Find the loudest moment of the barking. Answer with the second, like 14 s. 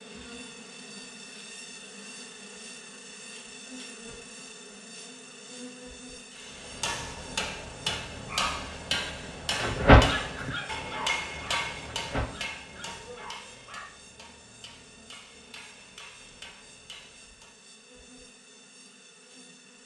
10 s.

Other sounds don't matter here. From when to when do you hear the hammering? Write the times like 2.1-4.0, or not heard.
6.3-17.6.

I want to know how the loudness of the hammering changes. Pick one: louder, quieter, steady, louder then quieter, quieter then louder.
quieter.